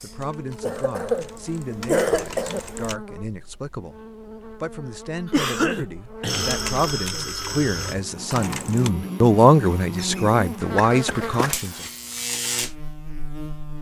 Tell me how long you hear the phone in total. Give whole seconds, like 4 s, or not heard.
3 s.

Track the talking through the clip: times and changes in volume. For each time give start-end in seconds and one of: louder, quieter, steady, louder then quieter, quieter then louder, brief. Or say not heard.
0.0-11.8 louder.